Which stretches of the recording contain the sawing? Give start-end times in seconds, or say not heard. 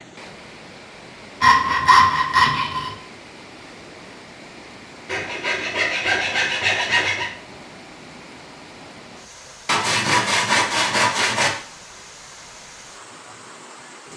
1.4-2.9, 5.0-7.3, 9.7-11.5.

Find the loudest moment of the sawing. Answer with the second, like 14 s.
2 s.